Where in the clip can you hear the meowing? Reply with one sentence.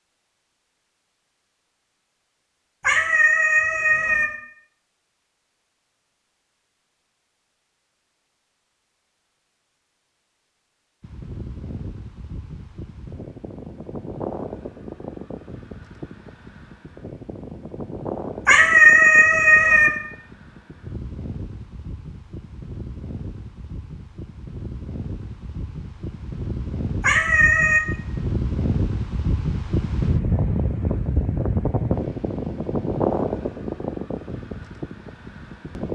You can hear the meowing from 2.8 to 4.2 s, from 18.4 to 19.9 s and from 27.0 to 27.8 s.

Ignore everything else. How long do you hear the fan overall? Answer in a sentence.
The fan can be heard for 25 seconds in total.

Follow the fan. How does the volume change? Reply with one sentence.
The loudness of the fan goes up.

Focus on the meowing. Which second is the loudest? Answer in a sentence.
The volume of the meowing peaks at 19 seconds.